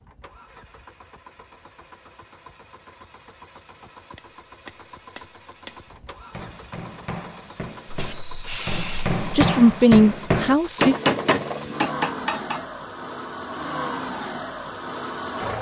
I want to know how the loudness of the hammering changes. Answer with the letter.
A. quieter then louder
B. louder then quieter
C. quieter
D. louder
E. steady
D.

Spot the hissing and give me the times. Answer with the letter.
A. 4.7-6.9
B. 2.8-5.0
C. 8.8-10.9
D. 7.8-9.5
D.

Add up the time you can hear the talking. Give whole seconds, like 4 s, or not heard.
2 s.